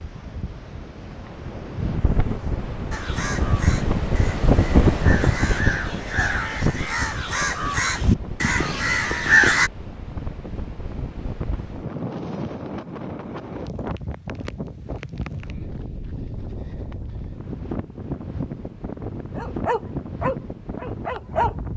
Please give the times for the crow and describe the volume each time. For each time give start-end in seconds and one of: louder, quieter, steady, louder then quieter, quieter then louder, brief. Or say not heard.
2.9-9.7 louder.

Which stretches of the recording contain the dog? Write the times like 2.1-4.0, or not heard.
19.4-21.6.